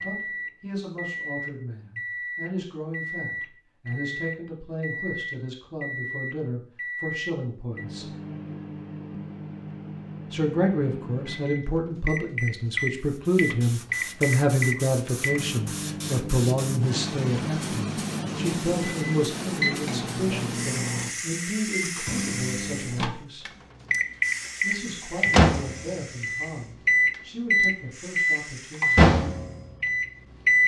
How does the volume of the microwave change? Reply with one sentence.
The loudness of the microwave goes up.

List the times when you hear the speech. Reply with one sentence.
You can hear the speech from 0.0 to 8.1 s, from 10.3 to 23.4 s and from 24.6 to 29.1 s.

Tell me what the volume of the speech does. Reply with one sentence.
The loudness of the speech goes up, then down.